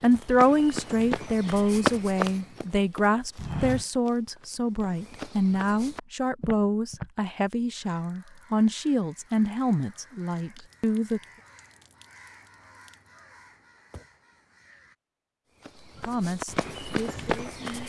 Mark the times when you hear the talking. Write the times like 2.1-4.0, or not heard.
0.0-11.2, 16.0-17.8.